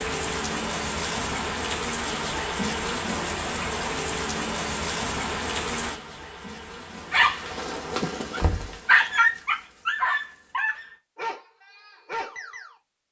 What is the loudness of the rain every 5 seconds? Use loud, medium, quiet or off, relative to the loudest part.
loud, medium, off.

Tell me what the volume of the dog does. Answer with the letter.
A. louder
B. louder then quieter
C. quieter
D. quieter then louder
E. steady
B.